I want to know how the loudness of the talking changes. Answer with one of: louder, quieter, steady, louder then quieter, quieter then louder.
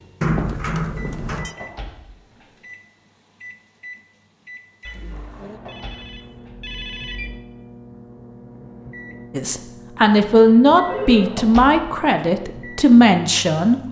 quieter then louder.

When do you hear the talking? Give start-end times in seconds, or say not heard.
9.3-13.8.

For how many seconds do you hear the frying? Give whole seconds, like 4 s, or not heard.
not heard.